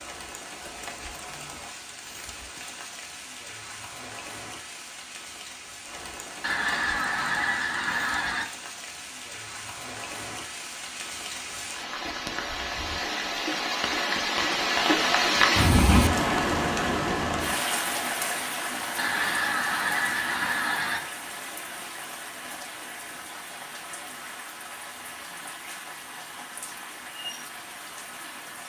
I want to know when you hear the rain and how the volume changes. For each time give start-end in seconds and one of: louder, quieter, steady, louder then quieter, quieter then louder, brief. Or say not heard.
0.0-28.6 louder then quieter.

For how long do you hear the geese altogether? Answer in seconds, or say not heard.
4 s.